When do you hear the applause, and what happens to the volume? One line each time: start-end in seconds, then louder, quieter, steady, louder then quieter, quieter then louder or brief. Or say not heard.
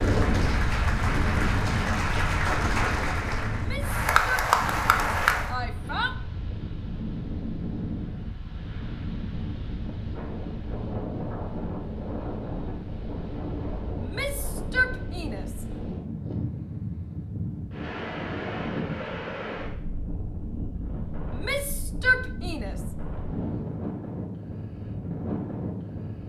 0.0-5.5 louder.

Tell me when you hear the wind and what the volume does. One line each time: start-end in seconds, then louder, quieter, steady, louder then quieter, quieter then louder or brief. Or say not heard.
0.0-26.2 steady.